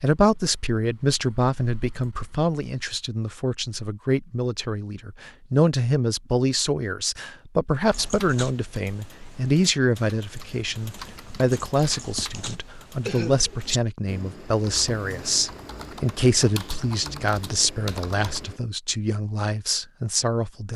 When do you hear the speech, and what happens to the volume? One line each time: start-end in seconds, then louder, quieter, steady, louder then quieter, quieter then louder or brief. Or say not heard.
0.0-20.7 steady.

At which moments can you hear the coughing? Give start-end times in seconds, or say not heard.
12.3-13.6.